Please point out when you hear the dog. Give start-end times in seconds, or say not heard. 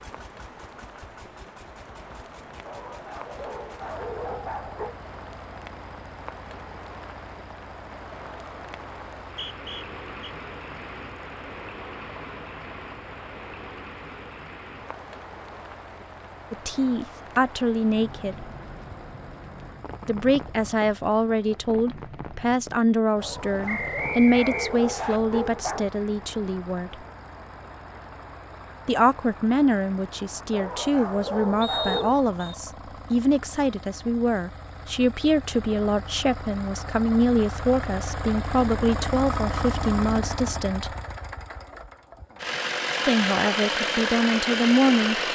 2.6-5.0, 23.1-25.9, 30.5-32.1.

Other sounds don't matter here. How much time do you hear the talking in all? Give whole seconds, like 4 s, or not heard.
23 s.